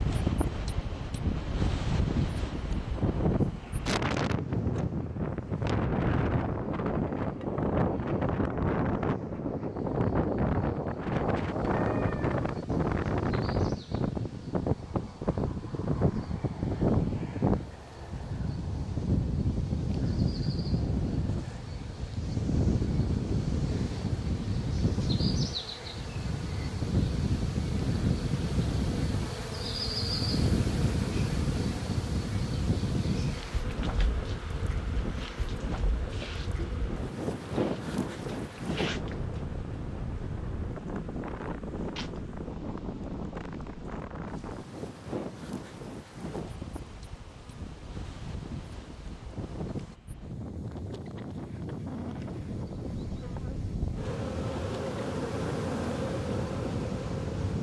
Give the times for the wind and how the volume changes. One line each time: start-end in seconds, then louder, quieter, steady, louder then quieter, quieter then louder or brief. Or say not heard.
0.0-57.5 quieter.